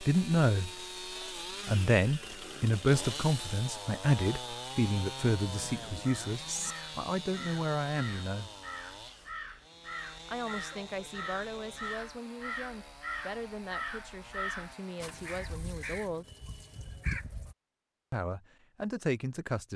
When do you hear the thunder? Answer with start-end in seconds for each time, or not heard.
5.5-6.8.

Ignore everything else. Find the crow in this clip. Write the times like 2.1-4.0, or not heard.
6.0-17.6.